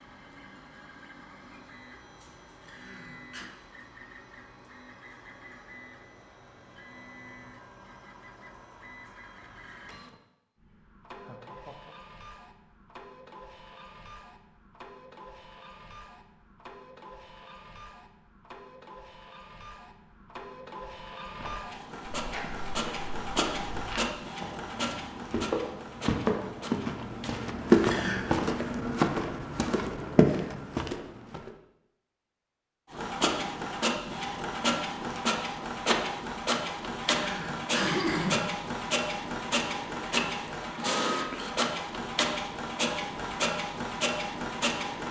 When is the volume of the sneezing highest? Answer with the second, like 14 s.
38 s.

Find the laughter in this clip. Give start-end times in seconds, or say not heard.
11.2-11.9.